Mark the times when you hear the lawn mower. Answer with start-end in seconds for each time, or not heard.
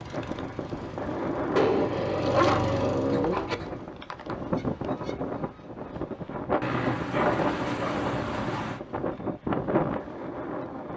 0.0-3.9.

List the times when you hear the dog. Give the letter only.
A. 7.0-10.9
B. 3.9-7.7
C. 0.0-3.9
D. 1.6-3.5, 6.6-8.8
D.